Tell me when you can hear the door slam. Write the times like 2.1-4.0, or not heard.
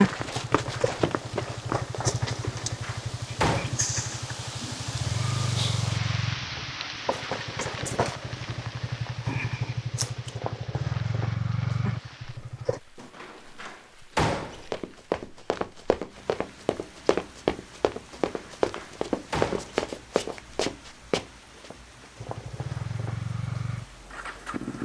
2.2-3.7, 12.9-14.7, 18.1-19.9.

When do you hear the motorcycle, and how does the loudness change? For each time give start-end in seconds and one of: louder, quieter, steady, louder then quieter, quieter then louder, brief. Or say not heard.
0.0-12.8 steady
22.1-24.8 brief.